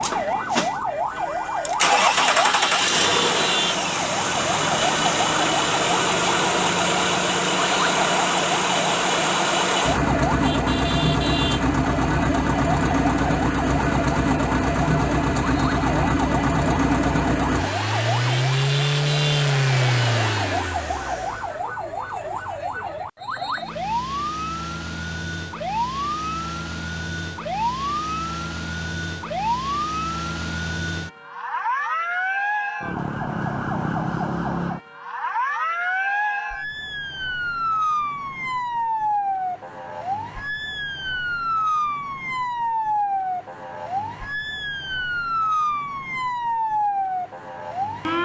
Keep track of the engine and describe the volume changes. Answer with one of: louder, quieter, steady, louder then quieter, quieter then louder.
steady.